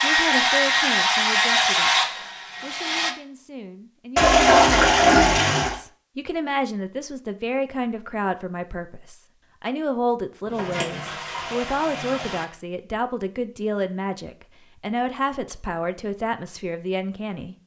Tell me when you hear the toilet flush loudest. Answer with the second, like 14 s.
5 s.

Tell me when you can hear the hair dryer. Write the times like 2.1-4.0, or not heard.
0.0-3.1.